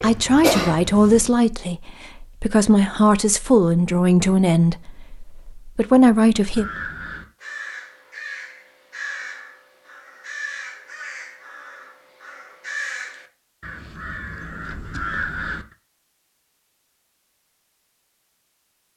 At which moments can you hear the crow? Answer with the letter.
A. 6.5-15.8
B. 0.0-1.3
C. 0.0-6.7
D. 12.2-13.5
A.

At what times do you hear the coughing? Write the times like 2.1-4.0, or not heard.
0.0-1.3.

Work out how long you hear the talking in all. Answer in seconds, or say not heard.
7 s.